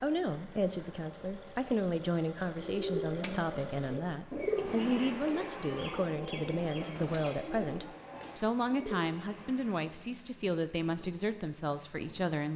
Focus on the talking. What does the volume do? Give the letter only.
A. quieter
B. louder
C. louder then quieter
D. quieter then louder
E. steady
E.